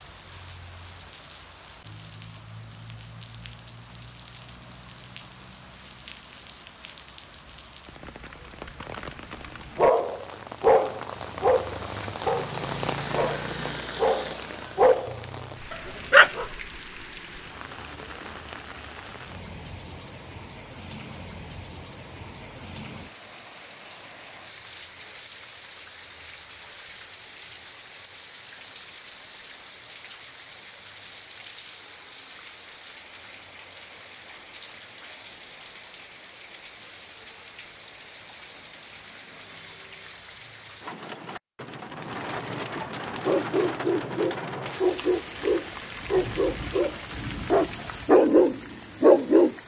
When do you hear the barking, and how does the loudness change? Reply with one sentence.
The barking can be heard from 9.8 to 16.4 s, getting quieter then louder; and from 43.2 to 49.5 s, getting louder.